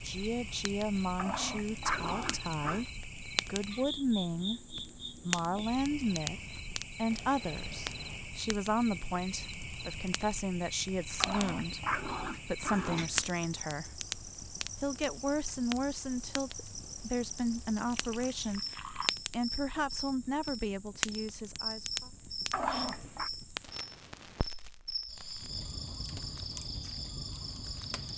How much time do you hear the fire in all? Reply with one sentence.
The fire can be heard for 28 seconds in total.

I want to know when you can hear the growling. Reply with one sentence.
You can hear the growling from 1.1 to 2.9 s, from 11.2 to 13.2 s and from 22.5 to 23.3 s.